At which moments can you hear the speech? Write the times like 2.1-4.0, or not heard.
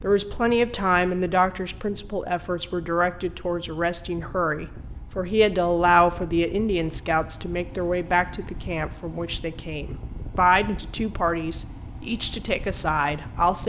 0.0-13.6.